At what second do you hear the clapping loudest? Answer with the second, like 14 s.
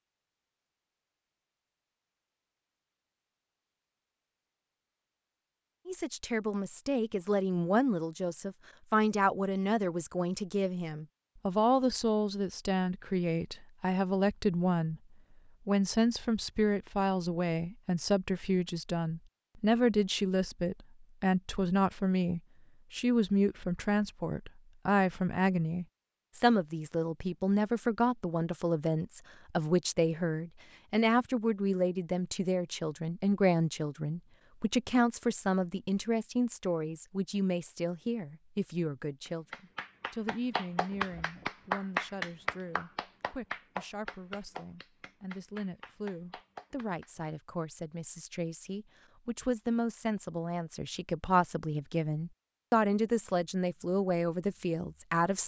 42 s.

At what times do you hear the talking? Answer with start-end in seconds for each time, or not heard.
5.8-15.0, 15.7-55.4.